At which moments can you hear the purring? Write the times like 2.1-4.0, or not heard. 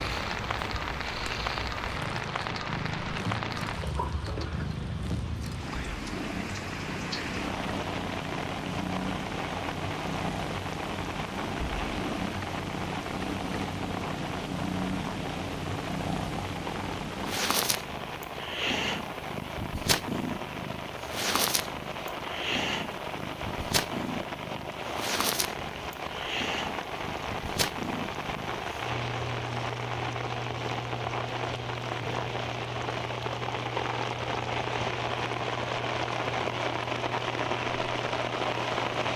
0.0-39.1.